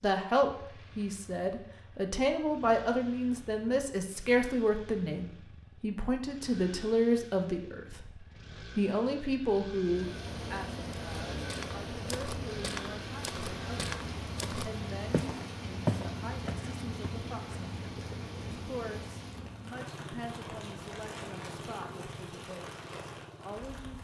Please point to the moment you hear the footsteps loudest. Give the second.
16 s.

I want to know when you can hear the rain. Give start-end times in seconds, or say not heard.
9.8-24.0.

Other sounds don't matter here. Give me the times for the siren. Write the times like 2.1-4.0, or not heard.
not heard.